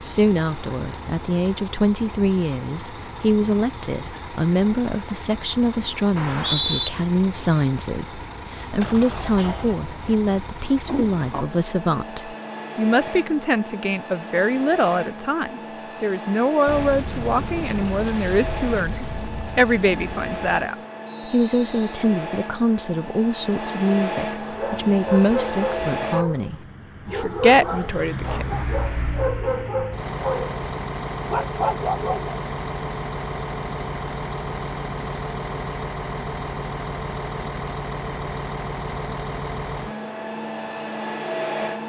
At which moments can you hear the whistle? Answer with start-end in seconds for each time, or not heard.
6.2-6.9, 21.1-21.8.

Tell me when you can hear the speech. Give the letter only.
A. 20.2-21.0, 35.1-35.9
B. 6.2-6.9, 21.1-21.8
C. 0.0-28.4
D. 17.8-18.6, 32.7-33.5
C.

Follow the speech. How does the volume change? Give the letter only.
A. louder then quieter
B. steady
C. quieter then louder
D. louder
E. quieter
B.